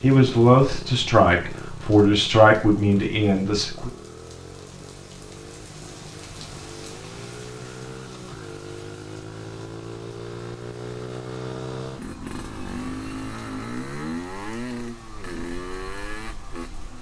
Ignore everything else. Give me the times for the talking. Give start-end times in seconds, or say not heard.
0.0-3.9.